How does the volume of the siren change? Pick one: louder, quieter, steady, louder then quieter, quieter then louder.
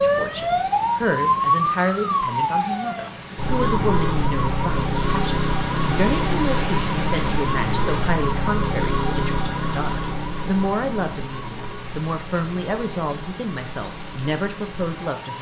quieter.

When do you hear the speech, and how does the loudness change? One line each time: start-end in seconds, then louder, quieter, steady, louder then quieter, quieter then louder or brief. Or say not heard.
0.0-15.3 steady.